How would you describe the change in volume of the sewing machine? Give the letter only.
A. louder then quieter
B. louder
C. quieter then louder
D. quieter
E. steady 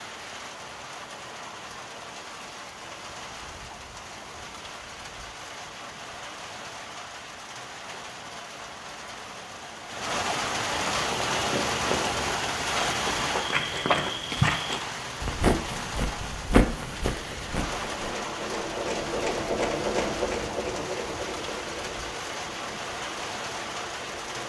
A.